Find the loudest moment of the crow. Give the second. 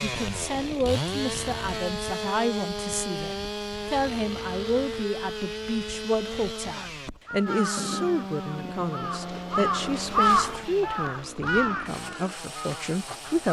10 s.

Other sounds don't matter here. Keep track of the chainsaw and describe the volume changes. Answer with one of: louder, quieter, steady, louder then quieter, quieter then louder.
quieter.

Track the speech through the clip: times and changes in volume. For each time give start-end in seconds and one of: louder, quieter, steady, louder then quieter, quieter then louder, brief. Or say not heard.
0.0-13.4 steady.